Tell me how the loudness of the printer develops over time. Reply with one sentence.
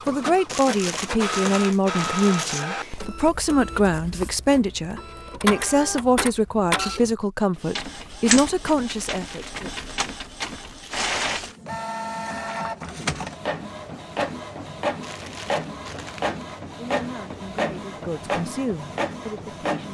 The volume of the printer stays about the same.